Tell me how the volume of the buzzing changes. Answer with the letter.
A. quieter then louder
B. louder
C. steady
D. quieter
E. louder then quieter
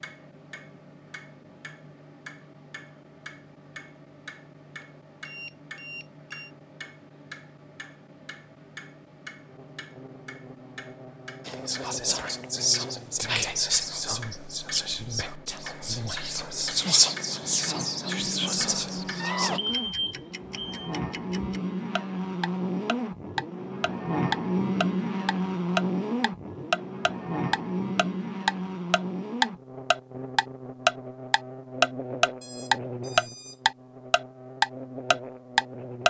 E.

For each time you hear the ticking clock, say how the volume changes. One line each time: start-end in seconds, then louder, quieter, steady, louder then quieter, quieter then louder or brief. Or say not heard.
0.0-36.0 louder.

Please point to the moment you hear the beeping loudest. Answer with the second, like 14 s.
20 s.